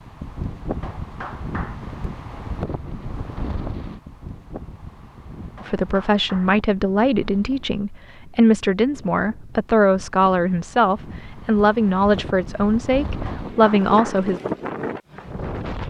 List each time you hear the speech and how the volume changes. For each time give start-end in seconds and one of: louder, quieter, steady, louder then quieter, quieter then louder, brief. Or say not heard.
5.7-14.4 steady.